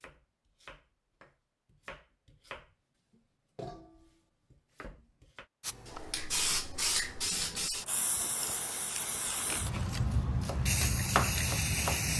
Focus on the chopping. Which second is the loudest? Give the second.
11 s.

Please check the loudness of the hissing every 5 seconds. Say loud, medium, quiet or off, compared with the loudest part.
off, loud, loud.